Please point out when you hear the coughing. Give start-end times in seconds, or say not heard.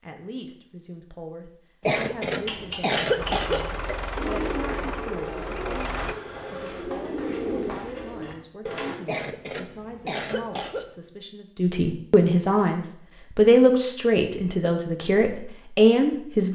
1.9-4.0, 9.1-10.9.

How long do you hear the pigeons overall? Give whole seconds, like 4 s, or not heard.
7 s.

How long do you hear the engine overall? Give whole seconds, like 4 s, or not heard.
3 s.